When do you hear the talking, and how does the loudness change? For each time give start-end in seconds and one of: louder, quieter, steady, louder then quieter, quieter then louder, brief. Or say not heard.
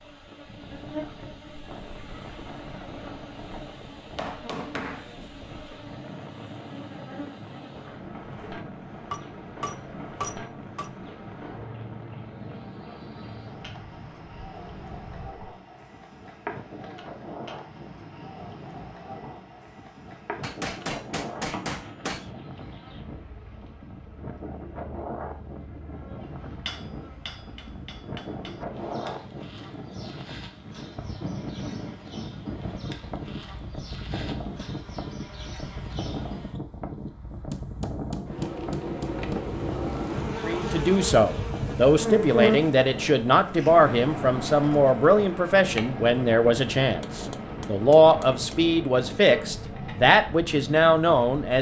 40.5-51.5 steady.